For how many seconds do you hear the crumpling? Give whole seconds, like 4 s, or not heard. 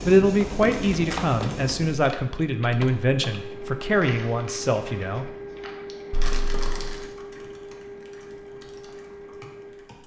2 s.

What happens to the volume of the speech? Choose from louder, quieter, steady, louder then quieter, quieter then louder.
steady.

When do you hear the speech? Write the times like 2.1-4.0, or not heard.
0.0-5.3.